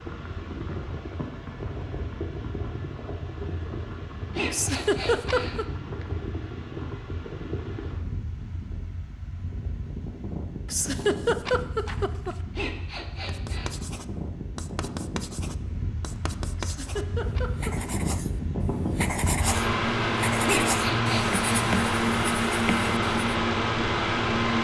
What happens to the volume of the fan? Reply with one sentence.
The volume of the fan goes up.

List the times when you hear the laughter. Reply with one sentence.
You can hear the laughter from 4.5 to 5.7 s, from 10.7 to 12.3 s and from 16.6 to 17.9 s.